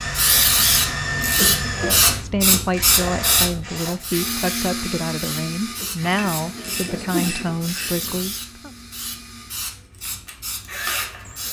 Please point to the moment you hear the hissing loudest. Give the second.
2 s.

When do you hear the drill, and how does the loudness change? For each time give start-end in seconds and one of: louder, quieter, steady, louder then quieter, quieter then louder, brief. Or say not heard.
0.0-11.4 quieter then louder.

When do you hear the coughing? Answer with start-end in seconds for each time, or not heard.
1.4-2.6, 5.8-7.3.